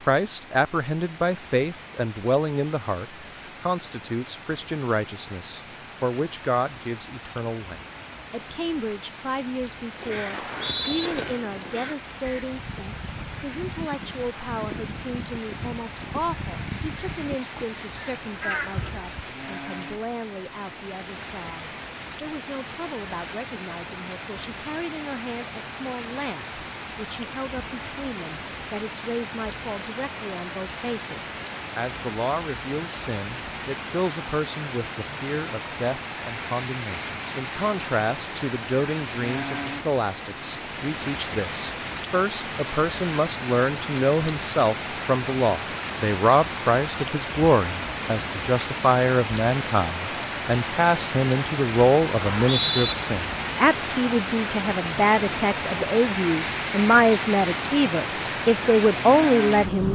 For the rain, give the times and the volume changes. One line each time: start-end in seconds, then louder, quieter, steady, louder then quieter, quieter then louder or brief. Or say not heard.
0.0-59.9 louder.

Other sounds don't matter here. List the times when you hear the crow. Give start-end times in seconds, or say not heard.
10.0-19.3.